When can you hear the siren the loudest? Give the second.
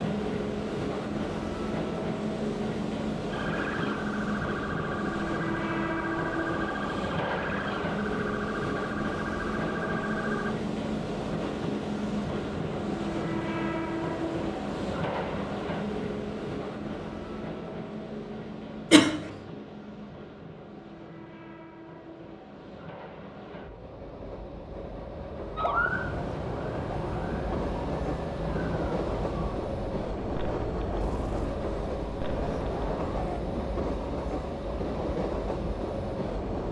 26 s.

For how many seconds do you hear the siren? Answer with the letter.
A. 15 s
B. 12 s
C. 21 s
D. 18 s
A.